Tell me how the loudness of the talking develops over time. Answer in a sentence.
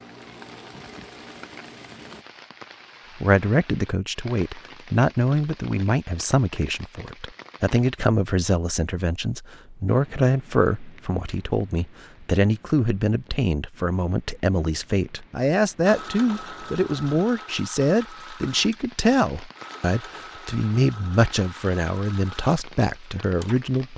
The volume of the talking stays about the same.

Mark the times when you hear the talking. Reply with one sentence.
The talking can be heard from 3.1 to 23.9 s.